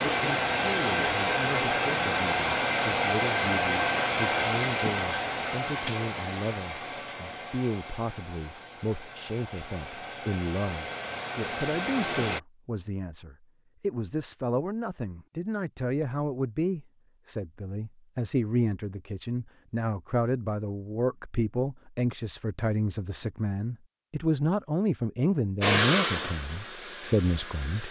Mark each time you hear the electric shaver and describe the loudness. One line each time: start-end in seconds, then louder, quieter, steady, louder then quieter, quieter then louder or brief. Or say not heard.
not heard.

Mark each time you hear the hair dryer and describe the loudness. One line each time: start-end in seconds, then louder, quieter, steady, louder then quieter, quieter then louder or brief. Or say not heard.
0.0-12.4 quieter then louder
25.6-27.8 brief.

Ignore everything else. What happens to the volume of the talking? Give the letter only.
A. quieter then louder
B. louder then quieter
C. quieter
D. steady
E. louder
E.